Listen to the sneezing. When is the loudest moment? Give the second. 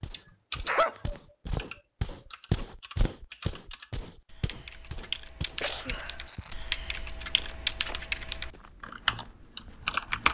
1 s.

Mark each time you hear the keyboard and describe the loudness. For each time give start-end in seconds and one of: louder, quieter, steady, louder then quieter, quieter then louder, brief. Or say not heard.
0.1-10.2 quieter then louder.